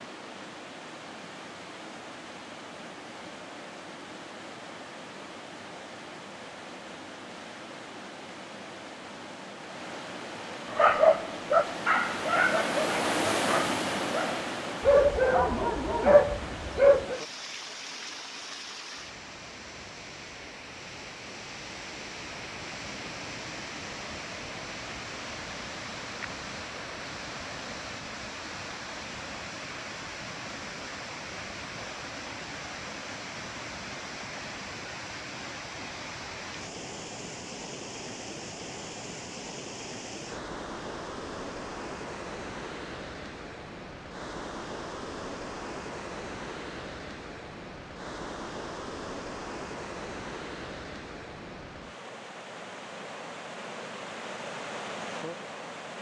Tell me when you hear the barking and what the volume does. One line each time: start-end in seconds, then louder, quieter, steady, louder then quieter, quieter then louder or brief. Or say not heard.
10.7-17.2 quieter then louder.